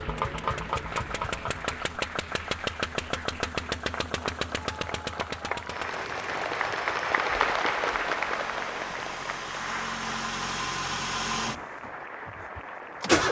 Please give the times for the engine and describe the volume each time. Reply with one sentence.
You can hear the engine from 0.0 to 13.2 s, getting quieter then louder.